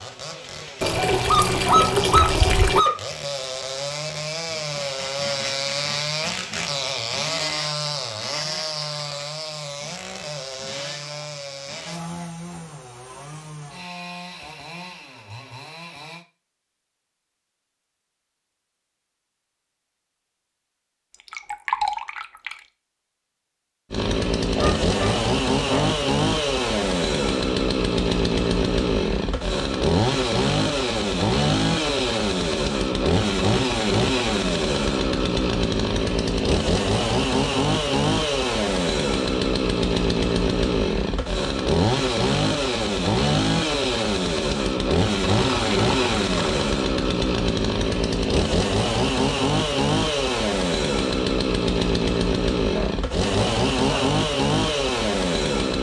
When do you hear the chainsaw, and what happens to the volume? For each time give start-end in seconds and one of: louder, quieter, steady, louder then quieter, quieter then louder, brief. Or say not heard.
0.0-16.2 louder then quieter
23.9-55.7 steady.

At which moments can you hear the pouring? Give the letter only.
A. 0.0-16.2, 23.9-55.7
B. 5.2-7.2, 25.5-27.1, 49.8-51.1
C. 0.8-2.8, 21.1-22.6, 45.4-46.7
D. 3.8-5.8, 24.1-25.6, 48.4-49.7
C.